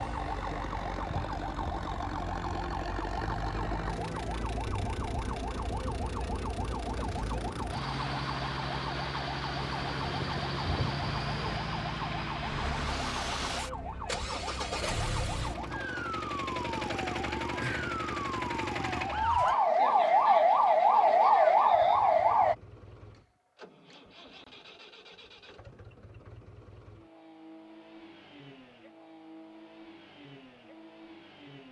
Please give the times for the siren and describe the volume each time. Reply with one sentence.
You can hear the siren from 0.0 to 22.6 s, getting louder.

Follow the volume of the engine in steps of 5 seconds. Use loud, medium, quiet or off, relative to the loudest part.
loud, loud, loud, loud, quiet, quiet, quiet.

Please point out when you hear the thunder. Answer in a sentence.
You can hear the thunder from 9.8 to 11.6 s.